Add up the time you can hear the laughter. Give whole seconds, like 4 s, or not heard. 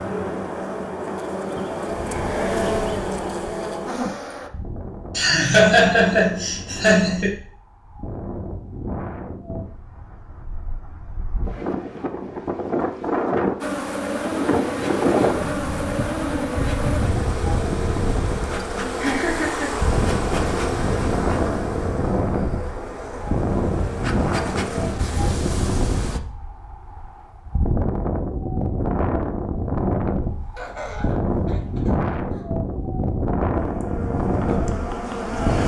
5 s.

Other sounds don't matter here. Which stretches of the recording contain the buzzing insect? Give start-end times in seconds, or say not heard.
0.0-4.5, 13.6-26.2, 33.5-35.6.